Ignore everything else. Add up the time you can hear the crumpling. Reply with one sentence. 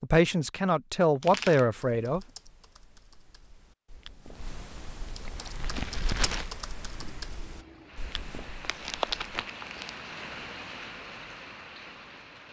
You can hear the crumpling for 3 seconds altogether.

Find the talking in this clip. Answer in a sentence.
The talking can be heard from 0.0 to 2.2 s.